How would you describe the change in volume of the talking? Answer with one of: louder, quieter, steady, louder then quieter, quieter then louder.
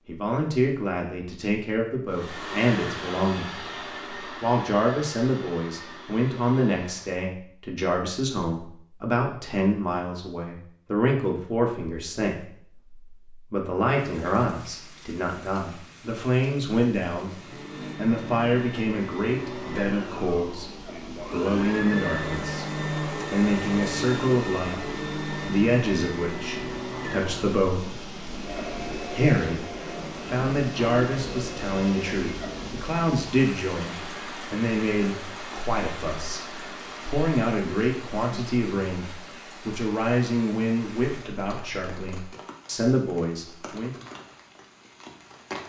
steady.